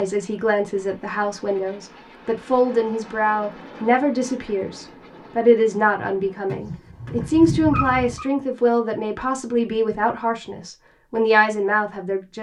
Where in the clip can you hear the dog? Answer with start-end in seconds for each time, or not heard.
6.5-8.2.